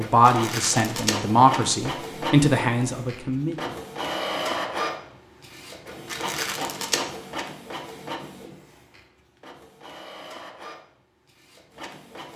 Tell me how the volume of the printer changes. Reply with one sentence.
The loudness of the printer goes down.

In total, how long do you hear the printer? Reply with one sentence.
The printer can be heard for 12 seconds in total.